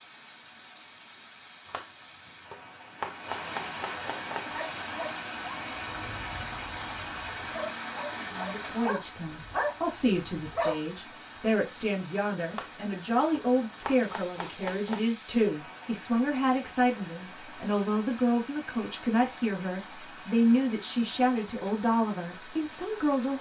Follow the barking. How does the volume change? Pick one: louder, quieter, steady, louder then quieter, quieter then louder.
quieter then louder.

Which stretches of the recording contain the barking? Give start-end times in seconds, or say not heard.
4.5-10.8.